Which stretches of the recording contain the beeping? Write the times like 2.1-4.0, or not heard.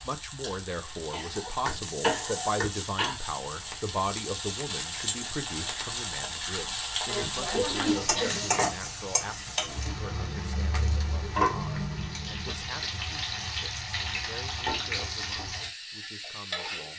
not heard.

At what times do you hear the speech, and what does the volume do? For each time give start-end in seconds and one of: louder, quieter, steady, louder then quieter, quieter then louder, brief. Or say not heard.
0.0-16.9 quieter.